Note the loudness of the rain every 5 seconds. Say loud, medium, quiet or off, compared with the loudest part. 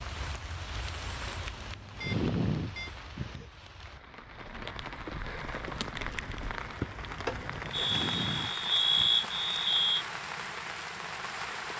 medium, loud, loud.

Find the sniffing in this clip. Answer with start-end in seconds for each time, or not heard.
1.9-3.5, 7.8-9.2.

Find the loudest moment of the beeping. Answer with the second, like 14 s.
9 s.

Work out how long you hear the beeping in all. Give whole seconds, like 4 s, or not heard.
4 s.